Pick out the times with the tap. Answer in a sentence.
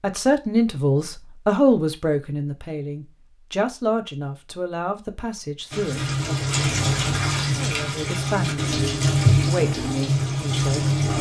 You can hear the tap from 5.7 to 11.1 s.